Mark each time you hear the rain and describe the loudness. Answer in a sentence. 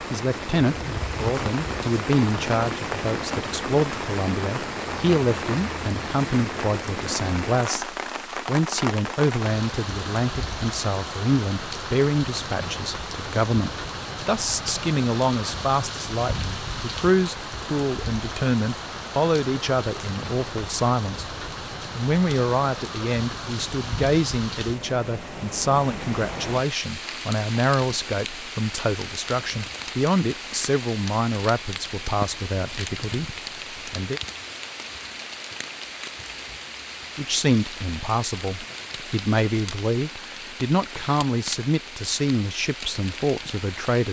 You can hear the rain from 0.0 to 44.0 s, getting quieter.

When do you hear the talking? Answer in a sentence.
The talking can be heard from 0.1 to 21.4 s, from 21.9 to 34.2 s and from 37.1 to 44.0 s.